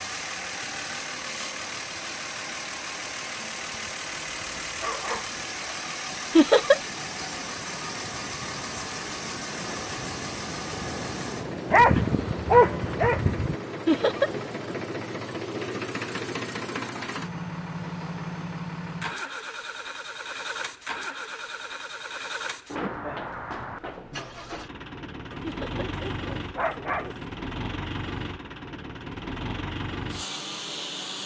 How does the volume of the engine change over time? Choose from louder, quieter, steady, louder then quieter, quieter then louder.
steady.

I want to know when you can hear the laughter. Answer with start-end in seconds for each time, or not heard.
6.3-6.8, 13.8-14.3, 25.4-25.9.